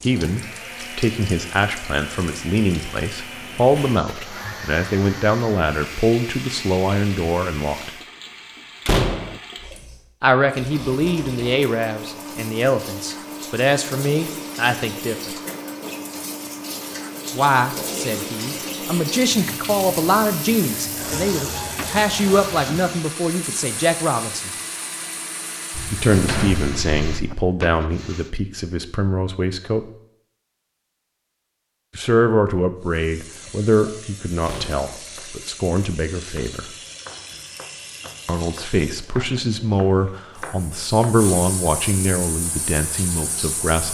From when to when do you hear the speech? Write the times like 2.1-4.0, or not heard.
0.0-7.9, 10.2-15.3, 17.4-24.5, 25.9-29.9, 31.9-36.6, 38.2-43.8.